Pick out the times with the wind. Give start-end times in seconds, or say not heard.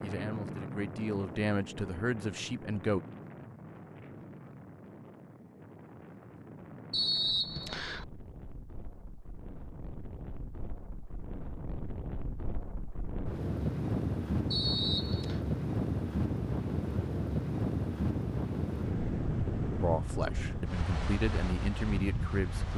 0.0-22.7.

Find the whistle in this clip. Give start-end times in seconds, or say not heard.
6.9-8.1, 14.5-15.4.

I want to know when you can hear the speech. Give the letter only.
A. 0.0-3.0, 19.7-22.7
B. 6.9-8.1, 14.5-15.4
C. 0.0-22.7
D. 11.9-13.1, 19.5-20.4
A.